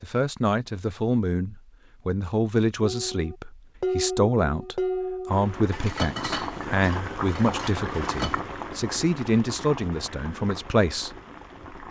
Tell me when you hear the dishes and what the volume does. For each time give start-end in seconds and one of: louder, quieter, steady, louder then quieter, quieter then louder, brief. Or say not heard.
2.8-8.4 quieter.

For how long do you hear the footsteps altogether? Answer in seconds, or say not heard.
not heard.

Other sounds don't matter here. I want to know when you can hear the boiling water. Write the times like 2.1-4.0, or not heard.
5.2-11.8.